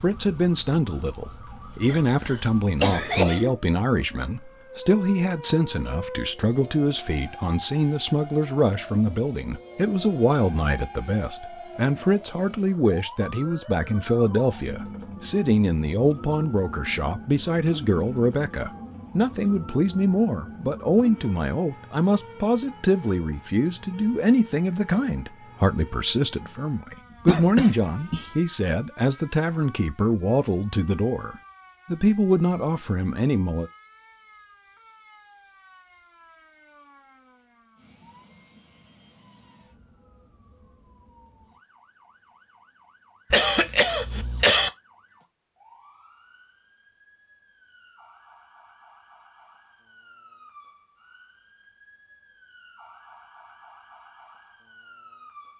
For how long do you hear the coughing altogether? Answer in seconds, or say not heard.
4 s.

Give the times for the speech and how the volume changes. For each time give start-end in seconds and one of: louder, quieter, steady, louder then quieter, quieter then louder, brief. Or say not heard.
0.0-33.7 steady.